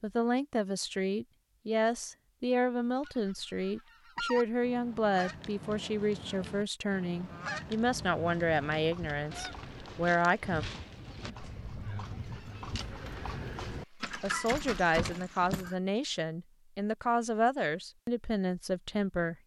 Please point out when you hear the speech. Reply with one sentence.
You can hear the speech from 0.0 to 10.7 s and from 14.2 to 19.4 s.